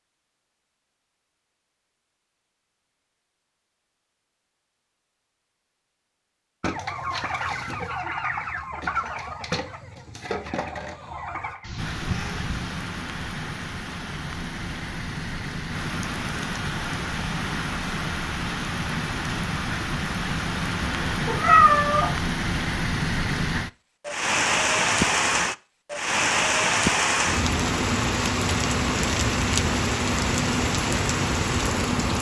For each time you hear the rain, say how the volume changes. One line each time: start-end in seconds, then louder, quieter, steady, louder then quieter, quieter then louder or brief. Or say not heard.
11.8-32.1 louder.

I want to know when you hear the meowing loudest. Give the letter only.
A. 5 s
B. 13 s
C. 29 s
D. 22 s
D.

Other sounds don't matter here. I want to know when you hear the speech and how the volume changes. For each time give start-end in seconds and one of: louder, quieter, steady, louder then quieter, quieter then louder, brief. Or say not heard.
not heard.